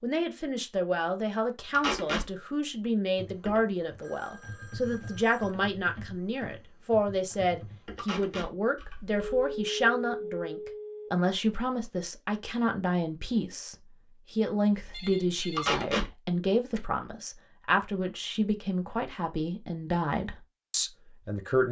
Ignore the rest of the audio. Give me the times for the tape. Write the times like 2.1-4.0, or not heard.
1.7-2.2, 8.0-8.5, 15.6-16.1.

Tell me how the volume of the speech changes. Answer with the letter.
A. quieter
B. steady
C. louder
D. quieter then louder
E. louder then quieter
B.